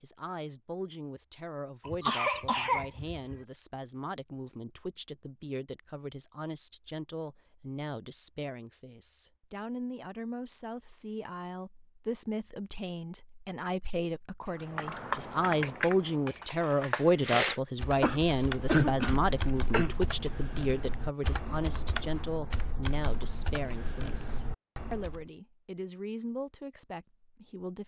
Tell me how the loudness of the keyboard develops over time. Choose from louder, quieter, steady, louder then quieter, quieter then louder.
quieter.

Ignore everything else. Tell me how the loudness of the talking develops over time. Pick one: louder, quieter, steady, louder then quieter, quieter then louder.
louder then quieter.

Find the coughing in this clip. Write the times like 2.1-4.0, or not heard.
1.9-3.4, 18.0-19.9.